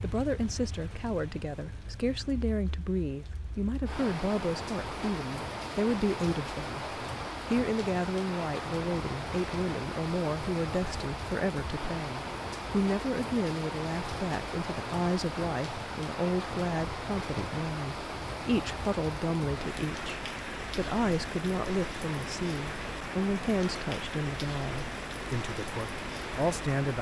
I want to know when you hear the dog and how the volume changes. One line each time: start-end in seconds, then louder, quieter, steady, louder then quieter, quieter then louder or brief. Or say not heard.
not heard.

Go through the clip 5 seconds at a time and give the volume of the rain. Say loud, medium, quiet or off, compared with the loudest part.
medium, loud, loud, loud, loud, loud.